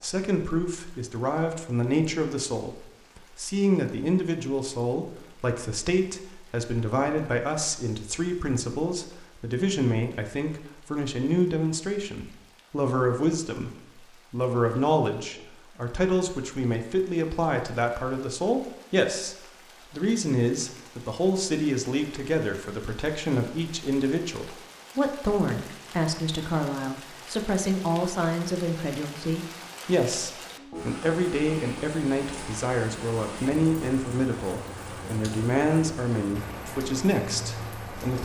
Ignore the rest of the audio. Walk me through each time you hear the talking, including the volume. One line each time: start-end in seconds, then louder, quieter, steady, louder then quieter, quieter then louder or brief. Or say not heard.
0.0-38.1 steady.